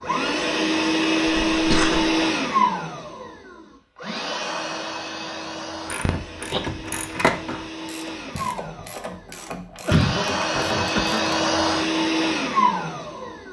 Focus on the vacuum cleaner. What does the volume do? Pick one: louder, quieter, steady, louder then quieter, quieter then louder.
quieter then louder.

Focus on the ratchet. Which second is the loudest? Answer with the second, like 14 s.
7 s.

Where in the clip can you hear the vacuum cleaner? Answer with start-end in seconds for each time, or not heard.
0.0-13.4.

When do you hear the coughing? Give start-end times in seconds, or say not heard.
1.5-2.1, 6.0-6.6, 9.8-11.2.